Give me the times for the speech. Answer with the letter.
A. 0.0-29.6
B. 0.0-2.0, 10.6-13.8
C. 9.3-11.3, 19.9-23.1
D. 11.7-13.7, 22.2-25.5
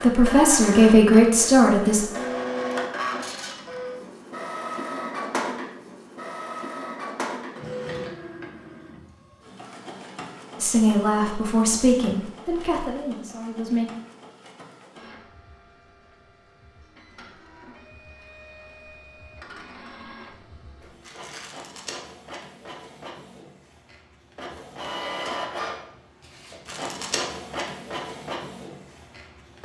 B.